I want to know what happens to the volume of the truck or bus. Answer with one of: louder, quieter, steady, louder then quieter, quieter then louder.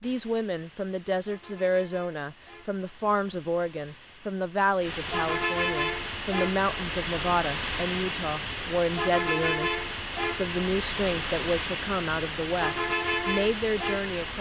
louder.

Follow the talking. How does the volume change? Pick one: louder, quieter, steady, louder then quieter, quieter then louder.
steady.